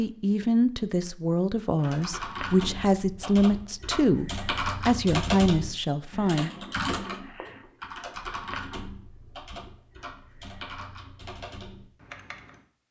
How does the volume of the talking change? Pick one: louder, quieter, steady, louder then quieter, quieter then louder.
steady.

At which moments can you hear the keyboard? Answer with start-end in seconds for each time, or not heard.
1.8-12.6.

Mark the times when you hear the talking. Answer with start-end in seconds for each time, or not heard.
0.0-6.5.